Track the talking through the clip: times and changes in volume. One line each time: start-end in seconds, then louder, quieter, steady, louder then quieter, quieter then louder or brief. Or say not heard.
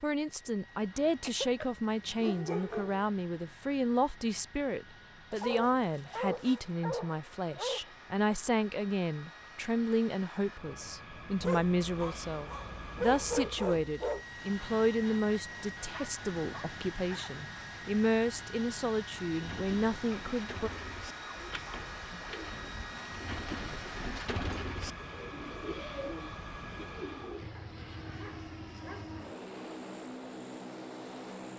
0.0-20.7 steady.